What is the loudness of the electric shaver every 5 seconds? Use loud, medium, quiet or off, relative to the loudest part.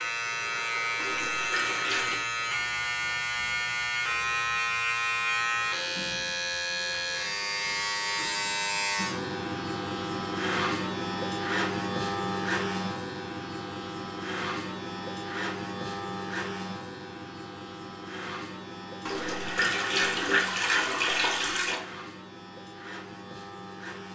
loud, loud, loud, medium, quiet.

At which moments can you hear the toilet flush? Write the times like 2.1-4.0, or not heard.
1.0-2.2, 19.1-21.8.